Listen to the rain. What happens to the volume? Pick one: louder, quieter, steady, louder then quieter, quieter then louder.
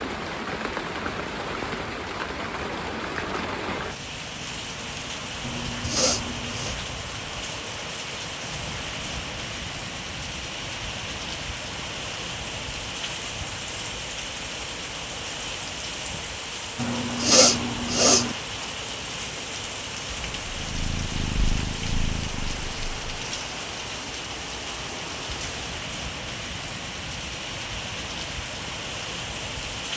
steady.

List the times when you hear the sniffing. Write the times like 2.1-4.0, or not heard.
5.4-6.8, 16.8-18.4.